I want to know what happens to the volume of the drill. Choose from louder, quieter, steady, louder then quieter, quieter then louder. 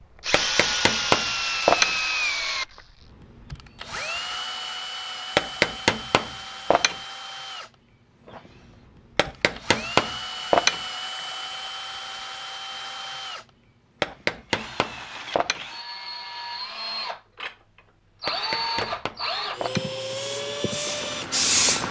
quieter then louder.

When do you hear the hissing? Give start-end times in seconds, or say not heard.
20.0-21.8.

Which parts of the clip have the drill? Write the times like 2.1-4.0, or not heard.
0.2-21.8.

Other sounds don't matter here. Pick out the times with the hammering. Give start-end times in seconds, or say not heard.
0.3-1.9, 5.3-7.0, 9.2-10.8, 14.0-15.6, 18.2-19.9.